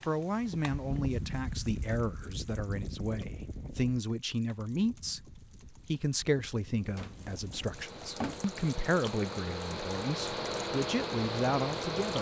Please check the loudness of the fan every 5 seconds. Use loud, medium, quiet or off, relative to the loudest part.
medium, medium, loud.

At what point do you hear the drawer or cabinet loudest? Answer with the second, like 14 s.
8 s.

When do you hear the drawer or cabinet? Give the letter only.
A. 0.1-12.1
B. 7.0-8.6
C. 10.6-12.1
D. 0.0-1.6
B.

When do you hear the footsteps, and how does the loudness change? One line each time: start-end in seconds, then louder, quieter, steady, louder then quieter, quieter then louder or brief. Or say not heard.
not heard.